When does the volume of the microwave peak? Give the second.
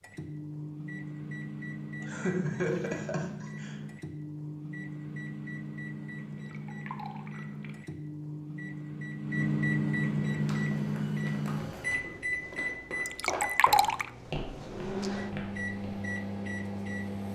10 s.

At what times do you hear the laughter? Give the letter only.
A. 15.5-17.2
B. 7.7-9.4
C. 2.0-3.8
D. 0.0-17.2
C.